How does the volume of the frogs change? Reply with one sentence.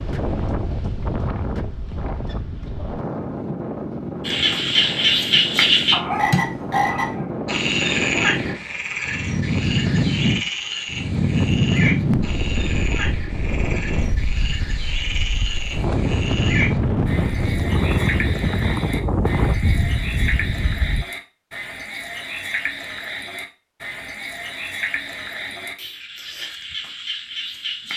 The volume of the frogs goes down.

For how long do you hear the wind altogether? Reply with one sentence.
You can hear the wind for 21 seconds altogether.